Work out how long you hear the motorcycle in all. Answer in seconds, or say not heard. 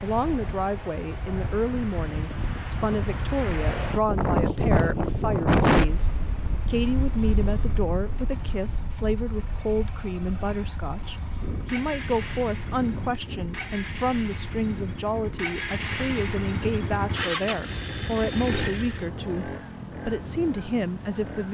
15 s.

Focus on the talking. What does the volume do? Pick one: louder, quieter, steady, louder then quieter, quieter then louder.
steady.